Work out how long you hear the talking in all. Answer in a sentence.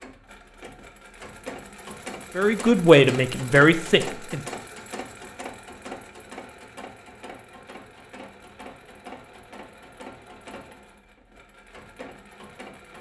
You can hear the talking for 2 seconds altogether.